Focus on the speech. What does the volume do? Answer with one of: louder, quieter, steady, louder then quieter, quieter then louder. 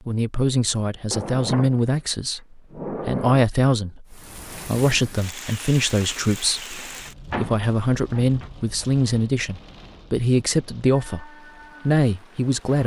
steady.